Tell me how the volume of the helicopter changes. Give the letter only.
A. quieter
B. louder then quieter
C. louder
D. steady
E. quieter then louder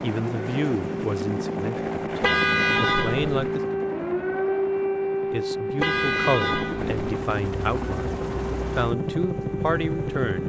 E.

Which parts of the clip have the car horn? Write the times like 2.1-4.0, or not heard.
2.2-3.5, 5.8-7.0.